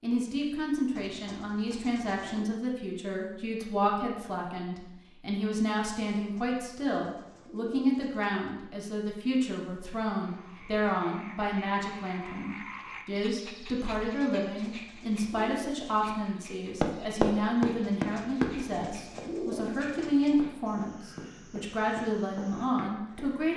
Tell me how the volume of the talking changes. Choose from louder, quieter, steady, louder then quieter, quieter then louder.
steady.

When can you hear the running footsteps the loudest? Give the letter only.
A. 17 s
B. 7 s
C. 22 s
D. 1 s
A.